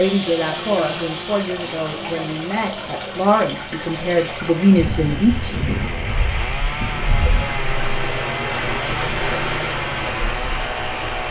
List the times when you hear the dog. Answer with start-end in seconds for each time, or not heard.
not heard.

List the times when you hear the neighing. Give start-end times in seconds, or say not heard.
not heard.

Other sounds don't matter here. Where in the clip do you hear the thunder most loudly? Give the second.
6 s.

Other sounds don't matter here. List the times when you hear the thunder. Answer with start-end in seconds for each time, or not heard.
4.8-7.6.